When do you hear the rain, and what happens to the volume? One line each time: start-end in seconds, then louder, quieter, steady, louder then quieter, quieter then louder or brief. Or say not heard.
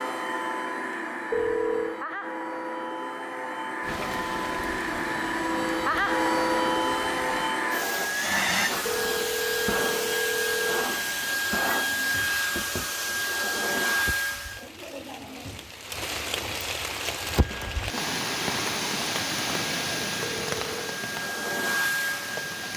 3.8-22.7 louder.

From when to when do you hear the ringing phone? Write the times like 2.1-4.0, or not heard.
1.3-2.0, 8.8-10.8, 20.2-20.9.